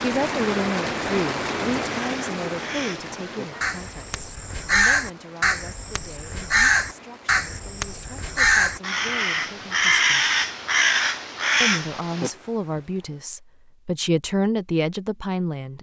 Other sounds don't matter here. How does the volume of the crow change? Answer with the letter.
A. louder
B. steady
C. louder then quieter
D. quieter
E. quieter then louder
A.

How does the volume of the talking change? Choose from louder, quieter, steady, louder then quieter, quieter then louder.
quieter then louder.